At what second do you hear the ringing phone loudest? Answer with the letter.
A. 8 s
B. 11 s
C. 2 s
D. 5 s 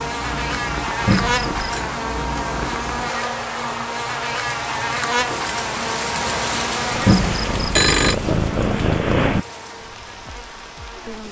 A.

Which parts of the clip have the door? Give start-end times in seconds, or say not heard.
not heard.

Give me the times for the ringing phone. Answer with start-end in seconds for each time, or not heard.
1.1-1.8, 7.0-8.2.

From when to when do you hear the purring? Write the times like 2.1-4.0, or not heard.
0.0-3.1, 6.9-9.4.